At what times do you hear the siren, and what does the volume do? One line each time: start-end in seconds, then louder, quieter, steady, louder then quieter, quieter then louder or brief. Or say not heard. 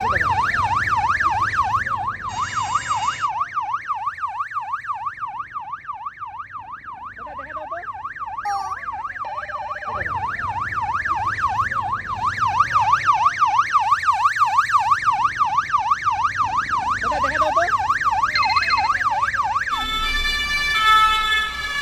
0.0-21.7 quieter then louder.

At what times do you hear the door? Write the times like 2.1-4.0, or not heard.
not heard.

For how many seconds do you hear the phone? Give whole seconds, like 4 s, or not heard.
3 s.